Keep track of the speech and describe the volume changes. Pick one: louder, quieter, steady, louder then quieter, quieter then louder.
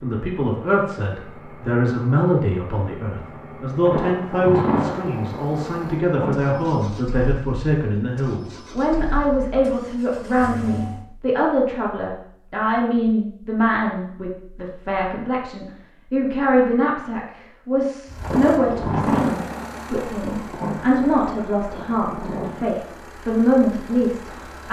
steady.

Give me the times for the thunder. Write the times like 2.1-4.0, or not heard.
3.9-6.8, 18.2-22.7.